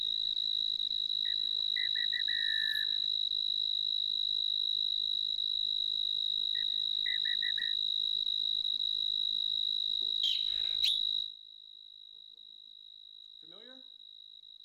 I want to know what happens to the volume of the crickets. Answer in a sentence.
The loudness of the crickets goes down.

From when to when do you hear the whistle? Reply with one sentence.
You can hear the whistle from 1.2 to 3.0 s, from 6.5 to 7.8 s and from 10.2 to 11.0 s.